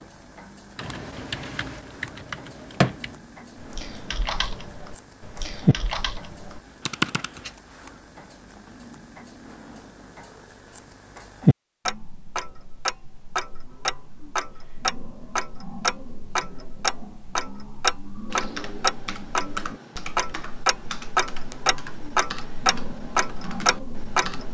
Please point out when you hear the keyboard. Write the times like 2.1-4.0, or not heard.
0.8-7.5, 18.3-24.5.